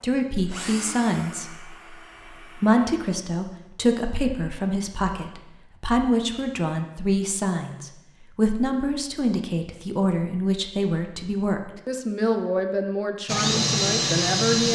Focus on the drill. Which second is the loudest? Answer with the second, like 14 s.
14 s.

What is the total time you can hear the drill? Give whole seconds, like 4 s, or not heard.
4 s.